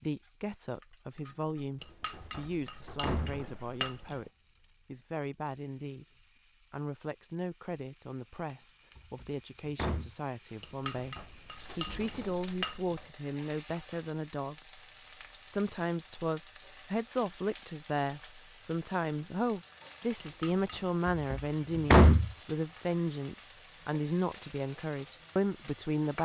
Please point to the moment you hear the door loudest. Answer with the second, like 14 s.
22 s.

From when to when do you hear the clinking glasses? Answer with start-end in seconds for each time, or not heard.
1.8-4.2, 10.6-13.1, 20.1-20.9.